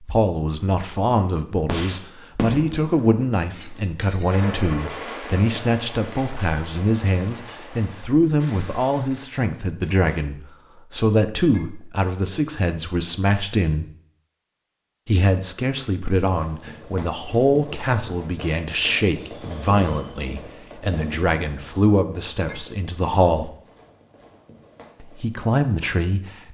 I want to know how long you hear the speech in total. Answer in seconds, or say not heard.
24 s.